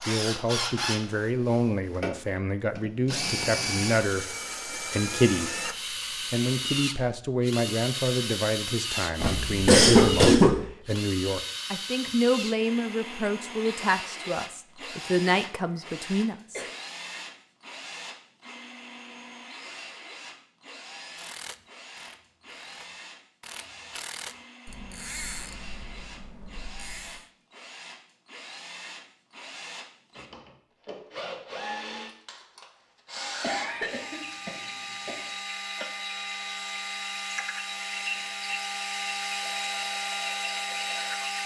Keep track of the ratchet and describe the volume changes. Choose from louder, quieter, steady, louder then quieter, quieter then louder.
louder then quieter.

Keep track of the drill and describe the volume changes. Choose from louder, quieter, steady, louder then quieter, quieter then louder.
quieter then louder.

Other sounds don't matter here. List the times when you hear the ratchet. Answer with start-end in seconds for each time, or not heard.
21.1-27.2.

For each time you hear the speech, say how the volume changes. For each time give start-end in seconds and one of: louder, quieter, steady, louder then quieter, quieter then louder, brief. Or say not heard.
0.0-16.6 steady.